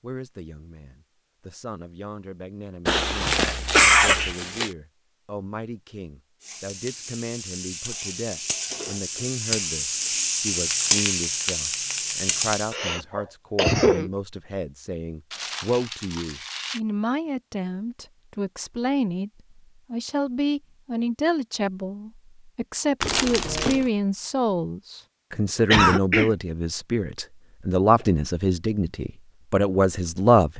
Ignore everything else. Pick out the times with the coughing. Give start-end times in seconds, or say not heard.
2.9-4.3, 12.7-14.1, 25.7-26.3.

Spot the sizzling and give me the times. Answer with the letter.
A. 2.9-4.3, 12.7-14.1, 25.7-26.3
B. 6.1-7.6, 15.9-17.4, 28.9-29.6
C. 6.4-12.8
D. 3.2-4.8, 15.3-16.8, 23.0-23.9
C.